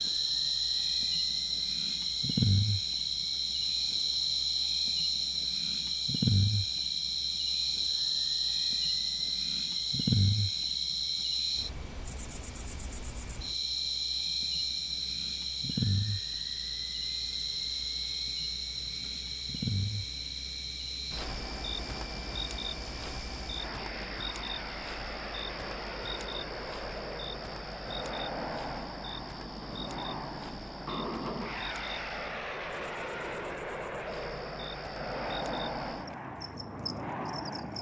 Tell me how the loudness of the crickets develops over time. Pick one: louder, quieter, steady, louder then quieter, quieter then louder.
quieter.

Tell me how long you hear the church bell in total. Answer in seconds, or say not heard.
not heard.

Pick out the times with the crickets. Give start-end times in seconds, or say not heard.
0.0-37.7.